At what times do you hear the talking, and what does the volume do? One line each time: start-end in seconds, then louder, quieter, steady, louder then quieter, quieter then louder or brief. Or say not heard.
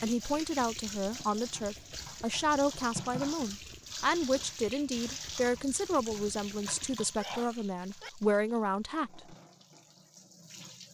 0.0-9.3 steady.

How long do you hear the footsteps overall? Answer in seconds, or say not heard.
not heard.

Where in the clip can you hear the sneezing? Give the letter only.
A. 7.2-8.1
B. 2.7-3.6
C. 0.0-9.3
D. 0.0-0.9
A.